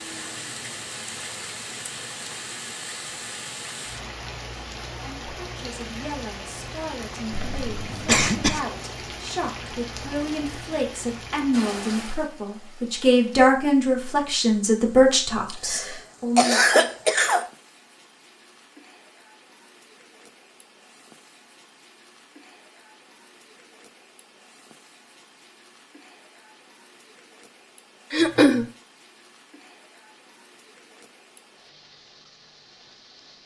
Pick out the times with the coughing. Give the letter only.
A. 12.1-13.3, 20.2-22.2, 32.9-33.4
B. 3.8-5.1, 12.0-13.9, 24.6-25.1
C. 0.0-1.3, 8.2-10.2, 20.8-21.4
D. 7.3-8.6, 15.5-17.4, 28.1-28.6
D.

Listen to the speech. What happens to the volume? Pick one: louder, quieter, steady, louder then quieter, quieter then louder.
louder.